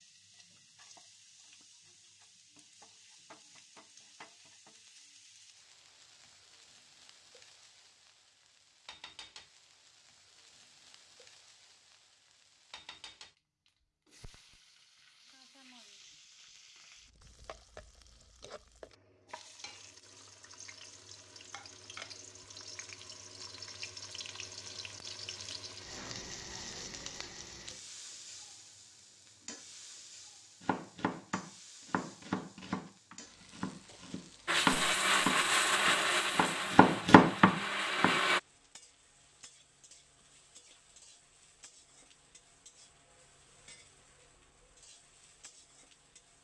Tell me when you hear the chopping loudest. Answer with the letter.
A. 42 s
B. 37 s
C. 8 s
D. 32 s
B.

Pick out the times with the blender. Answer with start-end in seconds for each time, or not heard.
34.5-38.4.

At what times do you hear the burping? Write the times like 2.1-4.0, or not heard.
not heard.